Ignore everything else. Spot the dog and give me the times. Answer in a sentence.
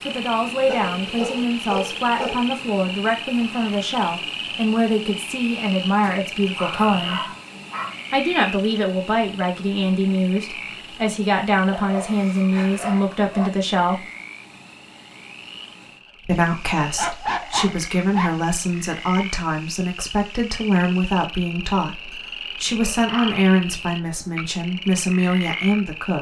The dog can be heard from 0.7 to 2.5 s, from 6.0 to 8.0 s, from 11.7 to 13.5 s, from 16.8 to 18.4 s and from 22.1 to 23.5 s.